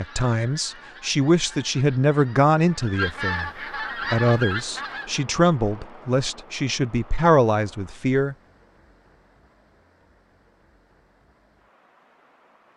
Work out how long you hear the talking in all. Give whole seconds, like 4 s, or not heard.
8 s.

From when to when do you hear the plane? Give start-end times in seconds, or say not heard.
not heard.